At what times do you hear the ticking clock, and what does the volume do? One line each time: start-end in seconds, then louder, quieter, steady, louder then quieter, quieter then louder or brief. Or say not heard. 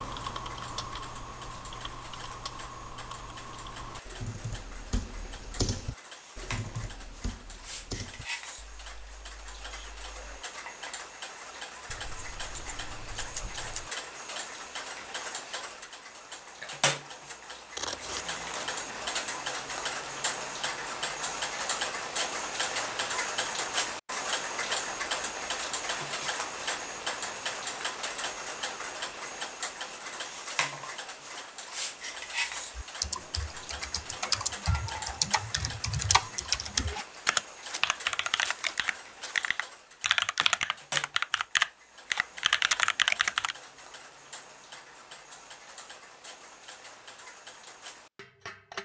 0.0-48.8 louder then quieter.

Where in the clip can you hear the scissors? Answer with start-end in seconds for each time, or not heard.
11.8-13.9, 17.8-18.8, 36.9-39.4.